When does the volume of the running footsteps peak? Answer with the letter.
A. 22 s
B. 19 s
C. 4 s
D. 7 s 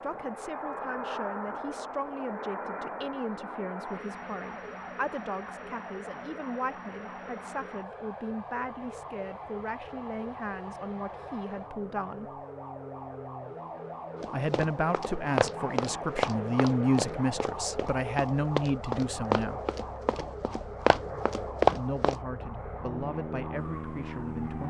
A.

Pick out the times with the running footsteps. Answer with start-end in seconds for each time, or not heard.
14.2-22.1.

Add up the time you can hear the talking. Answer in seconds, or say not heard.
21 s.